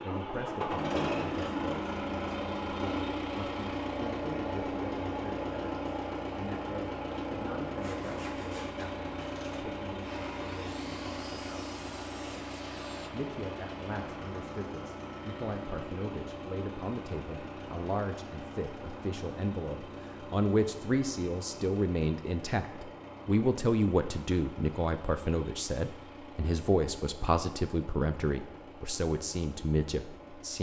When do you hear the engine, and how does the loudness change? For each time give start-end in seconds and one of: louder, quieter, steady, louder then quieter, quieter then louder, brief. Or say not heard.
0.0-30.5 quieter.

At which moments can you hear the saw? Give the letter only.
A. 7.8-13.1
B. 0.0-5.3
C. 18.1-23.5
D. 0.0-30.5
A.